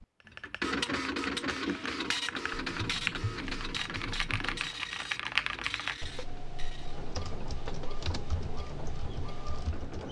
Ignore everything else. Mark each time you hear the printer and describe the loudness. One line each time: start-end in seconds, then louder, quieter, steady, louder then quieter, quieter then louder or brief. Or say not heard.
0.0-10.0 quieter.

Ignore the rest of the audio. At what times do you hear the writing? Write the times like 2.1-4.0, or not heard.
2.5-4.8.